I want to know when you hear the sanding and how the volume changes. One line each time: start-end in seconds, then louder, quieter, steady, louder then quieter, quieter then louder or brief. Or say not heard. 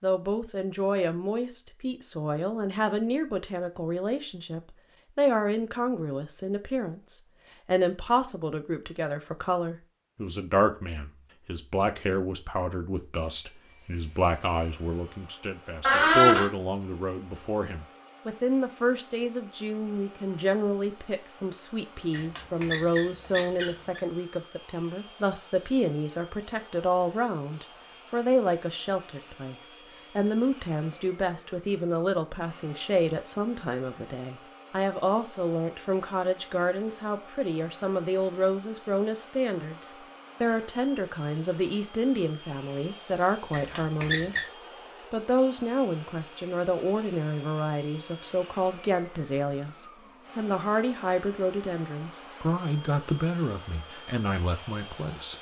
not heard.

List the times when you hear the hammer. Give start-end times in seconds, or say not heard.
not heard.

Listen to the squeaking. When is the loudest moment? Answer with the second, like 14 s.
16 s.